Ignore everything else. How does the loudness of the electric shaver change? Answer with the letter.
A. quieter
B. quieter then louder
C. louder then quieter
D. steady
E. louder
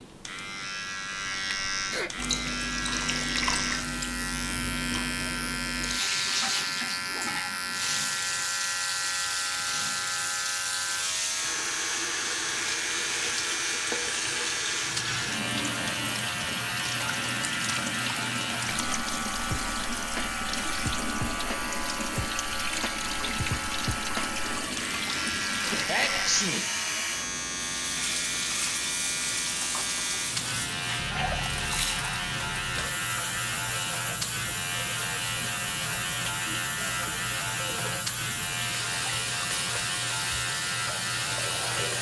D.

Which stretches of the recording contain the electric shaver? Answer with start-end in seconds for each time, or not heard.
0.0-41.9.